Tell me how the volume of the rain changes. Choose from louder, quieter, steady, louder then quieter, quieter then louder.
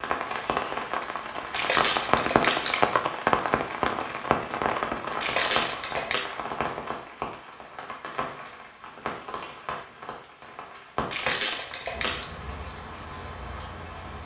quieter.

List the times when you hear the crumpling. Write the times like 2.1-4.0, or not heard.
1.5-3.0, 5.2-6.2, 11.1-12.2.